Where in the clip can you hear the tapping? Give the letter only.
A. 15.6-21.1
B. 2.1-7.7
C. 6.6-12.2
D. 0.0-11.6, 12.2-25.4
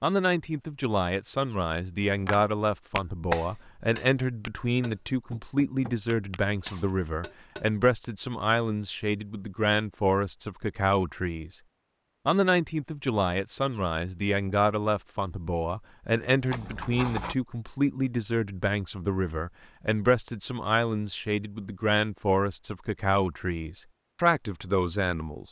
B.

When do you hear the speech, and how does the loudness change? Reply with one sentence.
You can hear the speech from 0.0 to 11.6 s, at a steady volume; and from 12.2 to 25.4 s, at a steady volume.